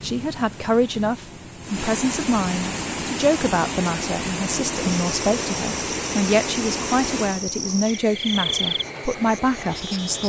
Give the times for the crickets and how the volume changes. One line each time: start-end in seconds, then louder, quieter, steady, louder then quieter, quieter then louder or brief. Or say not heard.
4.7-10.2 louder then quieter.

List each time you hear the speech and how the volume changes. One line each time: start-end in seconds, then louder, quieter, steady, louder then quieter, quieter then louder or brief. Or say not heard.
0.0-10.2 steady.